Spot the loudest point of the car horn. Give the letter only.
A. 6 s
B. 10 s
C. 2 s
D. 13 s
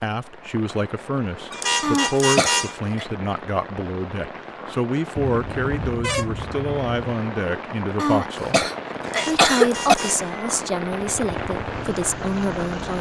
C.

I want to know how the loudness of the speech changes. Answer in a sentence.
The volume of the speech stays about the same.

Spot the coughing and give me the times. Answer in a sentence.
The coughing can be heard from 1.8 to 3.0 s and from 8.0 to 9.9 s.